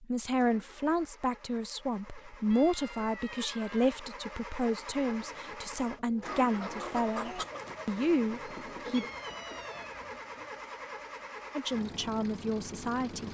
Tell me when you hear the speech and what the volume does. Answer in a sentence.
The speech can be heard from 0.0 to 9.1 s, at a steady volume; and briefly from 11.6 to 13.2 s.